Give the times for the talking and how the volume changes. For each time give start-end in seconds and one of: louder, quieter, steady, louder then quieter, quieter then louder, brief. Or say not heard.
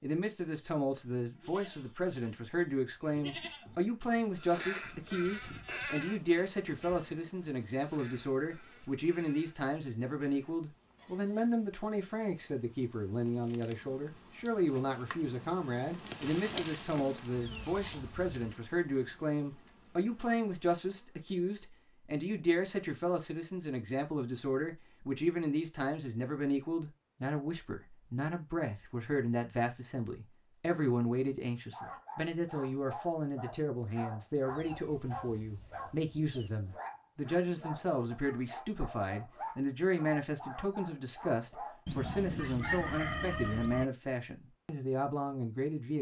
0.0-45.9 steady.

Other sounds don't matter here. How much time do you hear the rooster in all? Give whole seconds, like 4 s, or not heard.
2 s.